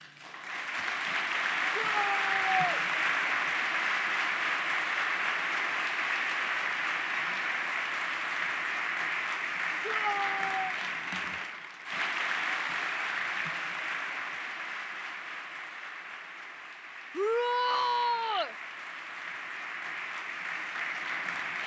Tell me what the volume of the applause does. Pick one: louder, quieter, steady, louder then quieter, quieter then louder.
quieter.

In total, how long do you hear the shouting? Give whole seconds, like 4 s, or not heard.
3 s.